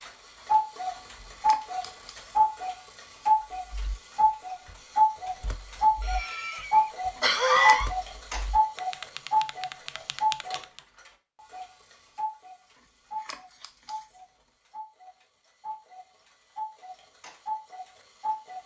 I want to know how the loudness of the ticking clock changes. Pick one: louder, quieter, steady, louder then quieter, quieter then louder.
quieter.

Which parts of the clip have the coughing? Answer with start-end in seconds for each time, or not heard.
6.0-7.9.